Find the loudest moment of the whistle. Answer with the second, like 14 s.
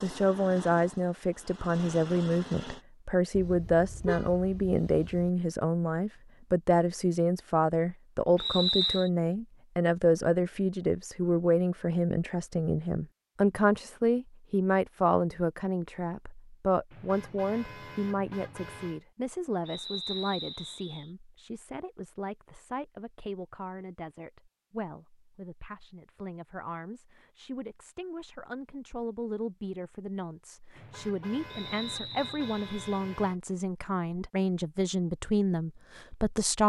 9 s.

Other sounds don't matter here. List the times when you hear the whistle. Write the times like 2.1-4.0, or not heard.
8.3-9.1, 19.6-21.1, 31.5-33.0.